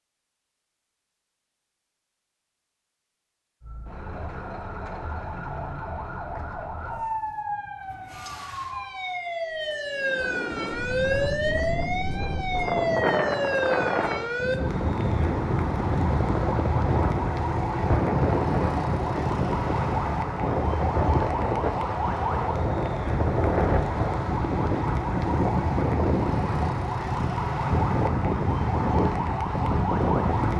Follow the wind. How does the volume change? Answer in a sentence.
The volume of the wind stays about the same.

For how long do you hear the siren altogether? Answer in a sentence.
You can hear the siren for 27 seconds altogether.